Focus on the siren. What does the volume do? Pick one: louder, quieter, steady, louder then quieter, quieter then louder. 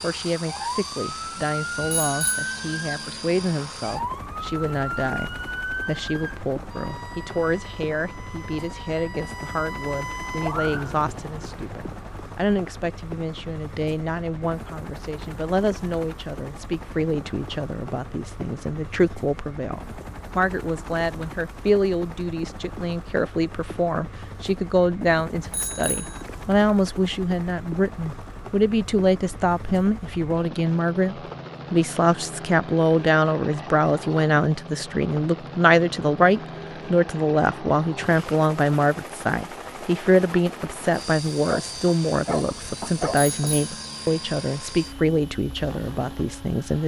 quieter then louder.